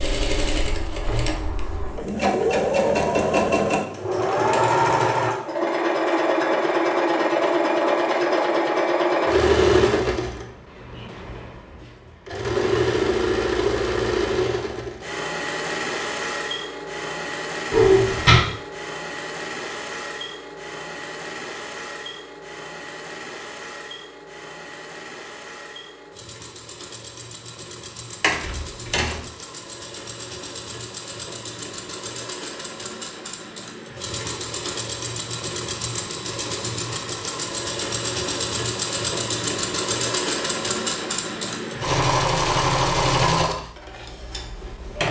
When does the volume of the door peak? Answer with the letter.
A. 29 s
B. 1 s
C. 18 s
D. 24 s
C.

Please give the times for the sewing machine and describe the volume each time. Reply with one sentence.
You can hear the sewing machine from 0.0 to 45.0 s, getting quieter then louder.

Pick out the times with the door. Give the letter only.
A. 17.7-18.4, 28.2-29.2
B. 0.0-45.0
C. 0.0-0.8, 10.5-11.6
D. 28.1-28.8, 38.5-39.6
A.